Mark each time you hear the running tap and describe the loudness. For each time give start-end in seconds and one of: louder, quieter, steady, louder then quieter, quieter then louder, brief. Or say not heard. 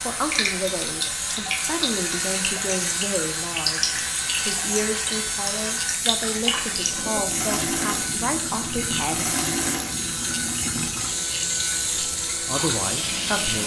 0.0-13.6 steady.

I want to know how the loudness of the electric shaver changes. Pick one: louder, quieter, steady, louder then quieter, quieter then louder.
steady.